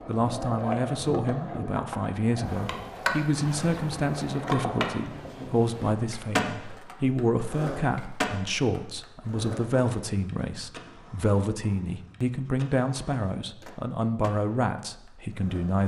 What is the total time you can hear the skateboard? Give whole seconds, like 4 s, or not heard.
16 s.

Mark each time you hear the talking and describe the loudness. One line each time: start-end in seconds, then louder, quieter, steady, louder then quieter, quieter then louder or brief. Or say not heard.
0.1-15.8 steady.